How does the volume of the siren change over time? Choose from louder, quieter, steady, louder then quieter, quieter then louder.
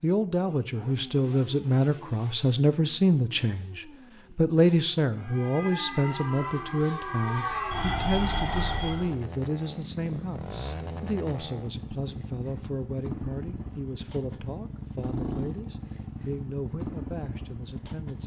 louder.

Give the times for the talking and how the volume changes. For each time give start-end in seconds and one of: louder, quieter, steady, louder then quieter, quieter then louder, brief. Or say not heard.
0.0-18.2 quieter.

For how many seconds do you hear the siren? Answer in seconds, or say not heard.
4 s.